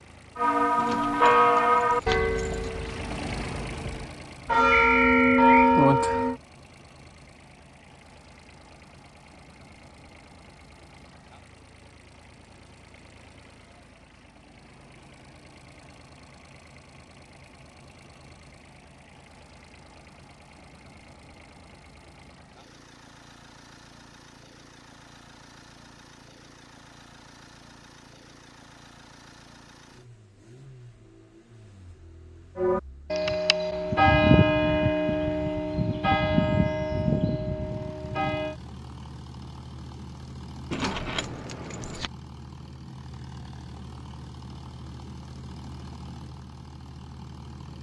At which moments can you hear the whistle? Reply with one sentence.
The whistle can be heard from 4.7 to 5.7 s.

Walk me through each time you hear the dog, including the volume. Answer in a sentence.
The dog can't be heard in this clip.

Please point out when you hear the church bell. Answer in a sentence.
You can hear the church bell from 0.3 to 6.3 s and from 32.5 to 38.5 s.